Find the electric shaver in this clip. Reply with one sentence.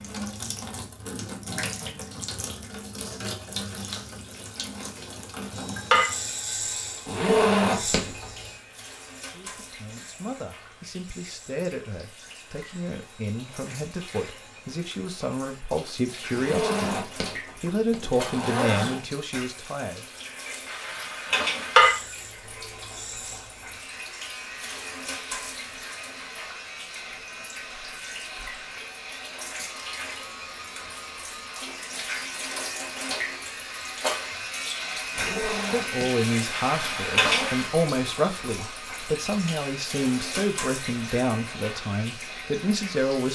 You can hear the electric shaver from 5.5 to 15.7 s and from 21.8 to 43.2 s.